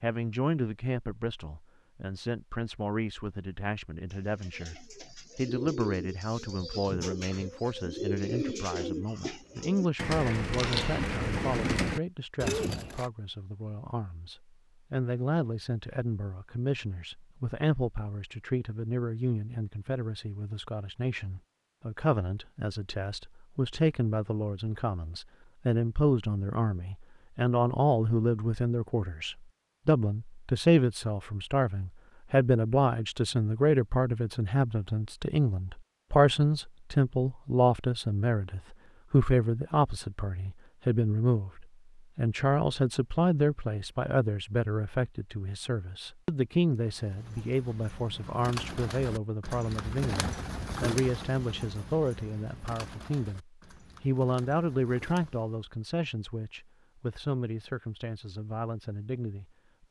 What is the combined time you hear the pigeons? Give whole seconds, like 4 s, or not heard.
18 s.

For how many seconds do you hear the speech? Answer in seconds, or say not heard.
60 s.